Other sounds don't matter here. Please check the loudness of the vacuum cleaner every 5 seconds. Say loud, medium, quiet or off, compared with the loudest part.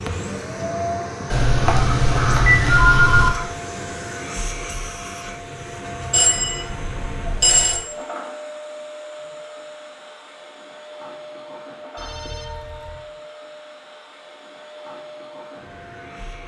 loud, medium, medium, medium.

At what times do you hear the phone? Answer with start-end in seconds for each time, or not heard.
1.3-3.3, 6.1-7.8, 11.9-13.1.